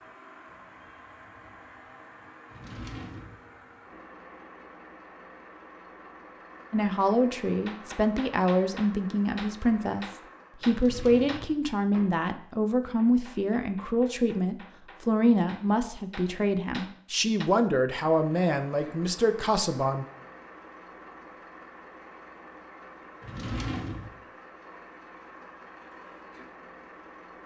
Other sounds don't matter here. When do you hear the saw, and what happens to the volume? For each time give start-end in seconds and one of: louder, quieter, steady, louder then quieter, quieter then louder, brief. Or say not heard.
not heard.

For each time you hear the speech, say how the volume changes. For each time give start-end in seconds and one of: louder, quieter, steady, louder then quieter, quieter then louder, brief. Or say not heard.
6.7-20.1 steady.